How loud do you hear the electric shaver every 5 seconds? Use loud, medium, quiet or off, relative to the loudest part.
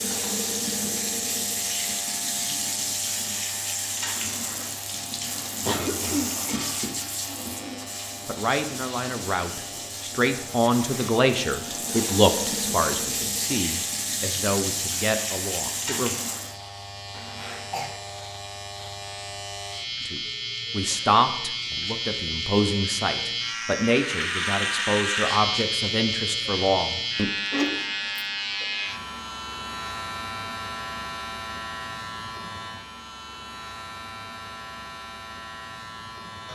quiet, quiet, quiet, medium, loud, loud, medium, medium.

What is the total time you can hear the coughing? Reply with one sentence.
You can hear the coughing for 3 seconds altogether.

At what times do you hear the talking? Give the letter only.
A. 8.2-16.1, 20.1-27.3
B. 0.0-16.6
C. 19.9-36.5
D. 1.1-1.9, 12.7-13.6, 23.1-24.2
A.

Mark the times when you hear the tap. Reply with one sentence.
You can hear the tap from 0.0 to 16.6 s.